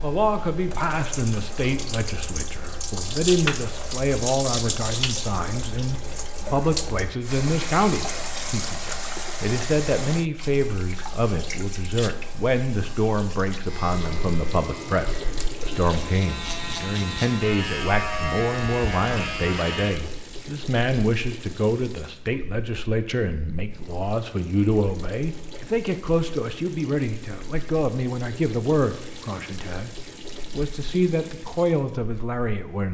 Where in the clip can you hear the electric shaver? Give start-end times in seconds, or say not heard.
13.7-19.9.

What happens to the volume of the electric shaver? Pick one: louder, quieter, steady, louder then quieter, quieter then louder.
louder.